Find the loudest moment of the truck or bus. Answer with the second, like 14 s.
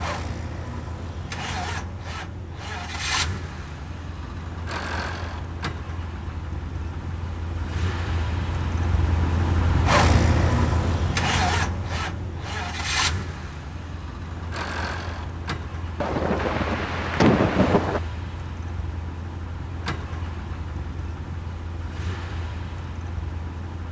10 s.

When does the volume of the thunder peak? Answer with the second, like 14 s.
17 s.